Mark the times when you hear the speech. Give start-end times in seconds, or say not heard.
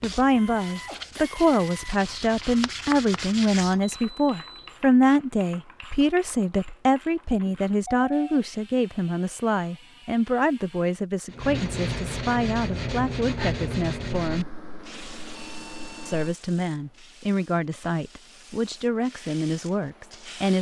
0.0-14.5, 16.1-20.5.